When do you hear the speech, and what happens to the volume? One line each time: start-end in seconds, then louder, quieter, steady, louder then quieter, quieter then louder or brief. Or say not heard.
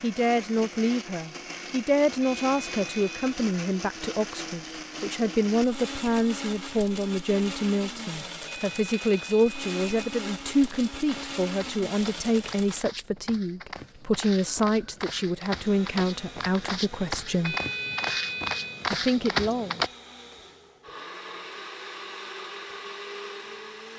0.0-17.6 steady
18.9-19.8 brief.